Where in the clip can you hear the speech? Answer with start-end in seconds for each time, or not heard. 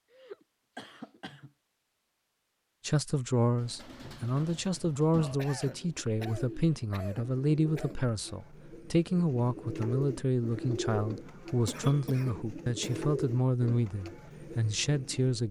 2.9-15.4.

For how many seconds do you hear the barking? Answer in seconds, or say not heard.
not heard.